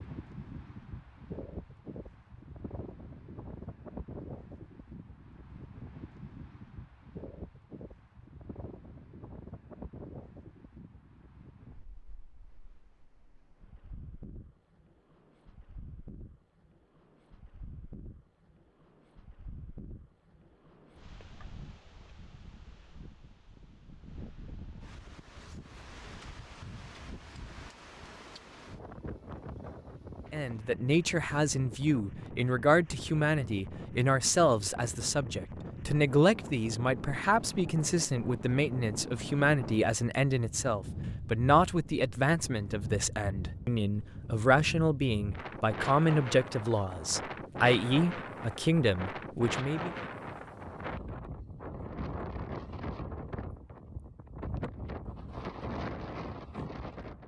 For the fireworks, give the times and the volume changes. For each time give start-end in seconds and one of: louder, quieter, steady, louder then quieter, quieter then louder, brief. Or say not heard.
not heard.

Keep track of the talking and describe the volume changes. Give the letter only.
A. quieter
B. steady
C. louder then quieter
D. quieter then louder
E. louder
B.